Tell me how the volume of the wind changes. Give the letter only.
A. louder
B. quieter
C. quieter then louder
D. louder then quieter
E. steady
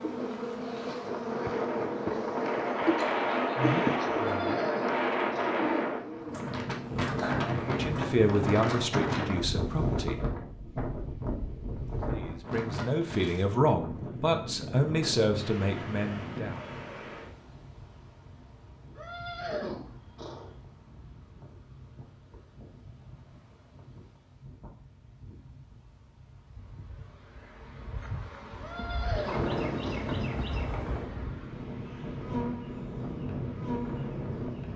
C.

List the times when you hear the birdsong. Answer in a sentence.
The birdsong can't be heard in this clip.